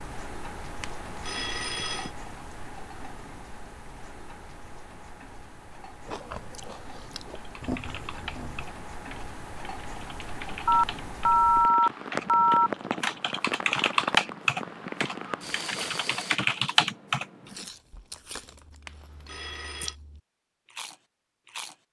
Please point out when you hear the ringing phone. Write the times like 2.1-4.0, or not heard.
0.8-2.1, 10.7-12.7, 18.9-19.9.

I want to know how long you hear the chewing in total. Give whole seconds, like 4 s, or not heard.
7 s.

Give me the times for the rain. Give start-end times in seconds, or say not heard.
0.0-16.4.